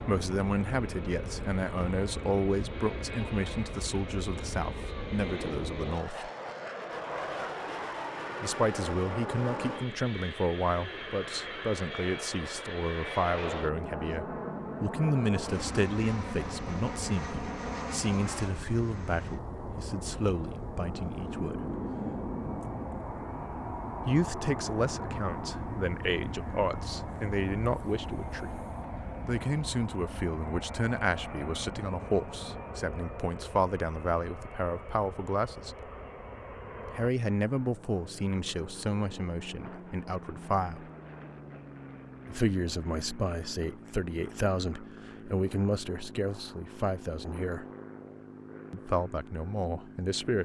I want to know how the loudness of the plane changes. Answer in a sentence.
The loudness of the plane goes down.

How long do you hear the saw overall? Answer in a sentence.
You can't hear the saw here.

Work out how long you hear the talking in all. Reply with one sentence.
You can hear the talking for 42 seconds altogether.